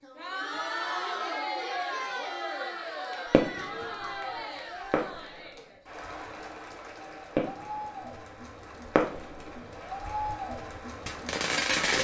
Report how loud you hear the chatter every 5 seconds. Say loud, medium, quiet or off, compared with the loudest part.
loud, medium, loud.